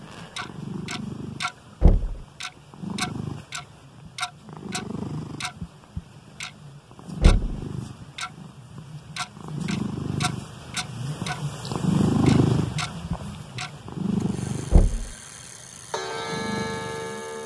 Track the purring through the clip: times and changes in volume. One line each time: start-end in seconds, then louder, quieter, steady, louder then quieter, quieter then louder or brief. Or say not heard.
0.0-17.4 louder then quieter.